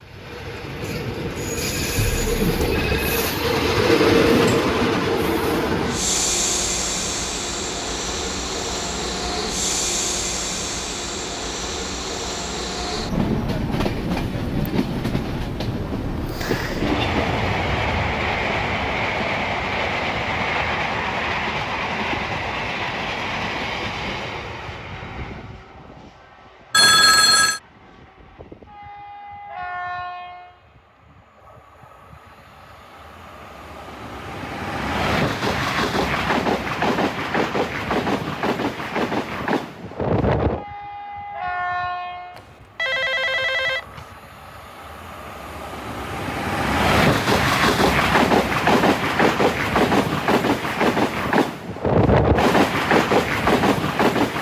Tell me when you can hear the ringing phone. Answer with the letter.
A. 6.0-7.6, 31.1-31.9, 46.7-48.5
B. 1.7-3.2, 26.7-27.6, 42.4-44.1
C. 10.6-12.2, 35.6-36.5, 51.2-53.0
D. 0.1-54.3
B.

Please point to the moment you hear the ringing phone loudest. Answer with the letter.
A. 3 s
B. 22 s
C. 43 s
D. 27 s
D.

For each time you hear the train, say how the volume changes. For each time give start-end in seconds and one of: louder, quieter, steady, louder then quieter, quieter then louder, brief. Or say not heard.
0.1-54.3 quieter then louder.